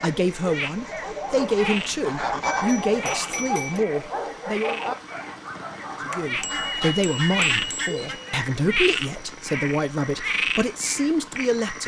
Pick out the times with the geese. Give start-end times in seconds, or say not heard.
1.2-3.3, 6.5-8.2.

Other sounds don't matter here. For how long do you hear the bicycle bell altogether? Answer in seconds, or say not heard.
4 s.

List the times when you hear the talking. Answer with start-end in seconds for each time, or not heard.
0.0-4.8, 6.0-11.8.